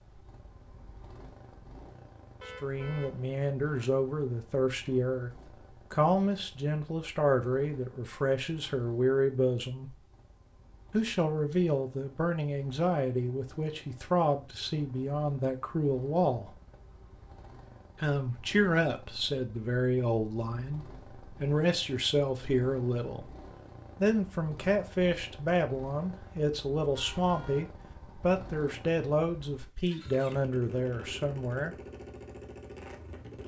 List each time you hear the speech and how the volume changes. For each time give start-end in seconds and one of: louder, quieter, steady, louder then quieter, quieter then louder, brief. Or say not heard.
2.6-9.9 steady
10.9-16.6 steady
18.0-23.3 quieter then louder
24.0-31.8 steady.